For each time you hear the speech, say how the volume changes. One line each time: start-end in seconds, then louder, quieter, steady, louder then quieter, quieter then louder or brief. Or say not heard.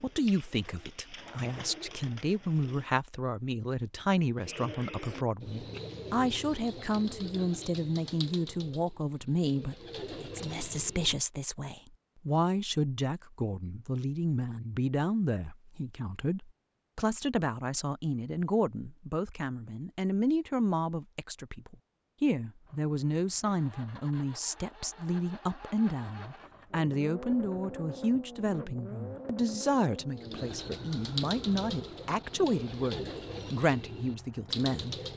0.0-35.0 steady.